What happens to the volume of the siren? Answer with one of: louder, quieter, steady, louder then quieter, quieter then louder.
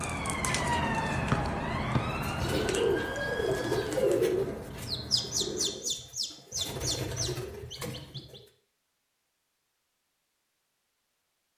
quieter.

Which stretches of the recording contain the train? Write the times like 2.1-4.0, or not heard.
0.0-5.9.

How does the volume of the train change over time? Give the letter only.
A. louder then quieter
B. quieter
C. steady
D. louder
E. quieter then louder
B.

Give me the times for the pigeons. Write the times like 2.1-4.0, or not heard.
2.1-8.4.